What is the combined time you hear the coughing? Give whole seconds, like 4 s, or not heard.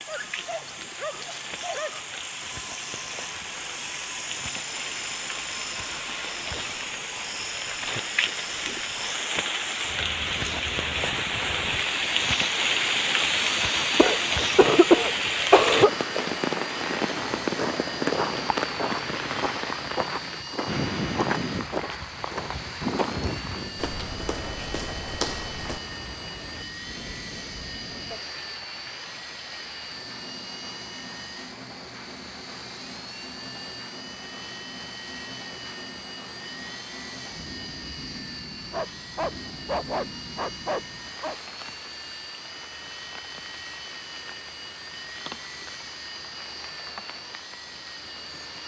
2 s.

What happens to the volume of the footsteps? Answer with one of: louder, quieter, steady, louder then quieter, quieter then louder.
steady.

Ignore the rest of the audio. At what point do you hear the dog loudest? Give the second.
40 s.